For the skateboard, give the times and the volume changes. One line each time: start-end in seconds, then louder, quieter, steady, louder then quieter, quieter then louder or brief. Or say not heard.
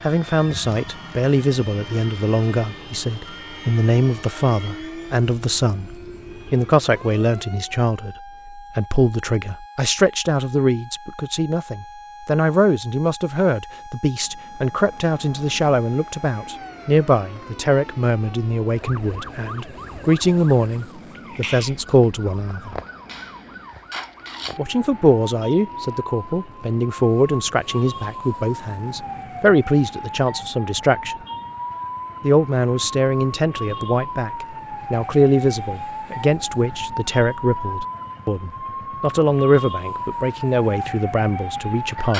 not heard.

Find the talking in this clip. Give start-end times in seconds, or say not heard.
0.0-5.9, 6.5-22.8, 24.6-31.1, 32.2-42.1.